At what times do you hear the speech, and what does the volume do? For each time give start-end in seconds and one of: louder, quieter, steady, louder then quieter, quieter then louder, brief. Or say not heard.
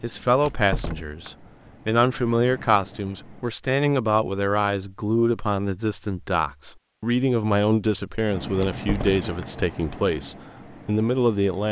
0.0-11.6 steady.